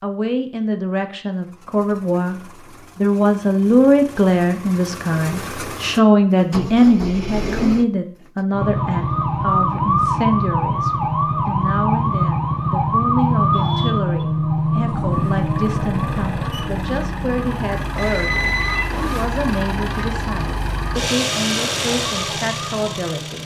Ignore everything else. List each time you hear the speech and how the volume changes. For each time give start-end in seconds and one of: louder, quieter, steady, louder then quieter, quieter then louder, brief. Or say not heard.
0.0-23.3 quieter.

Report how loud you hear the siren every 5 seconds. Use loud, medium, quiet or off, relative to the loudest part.
off, loud, loud, medium, quiet.